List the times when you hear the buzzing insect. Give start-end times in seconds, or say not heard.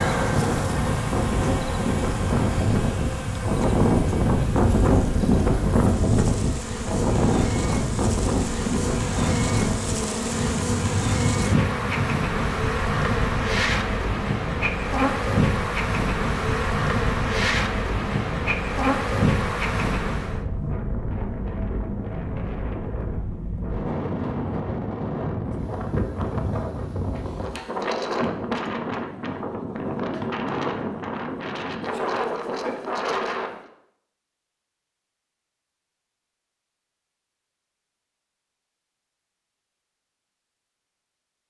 0.0-20.4.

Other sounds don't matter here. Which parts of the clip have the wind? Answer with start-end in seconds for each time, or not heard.
0.0-33.7.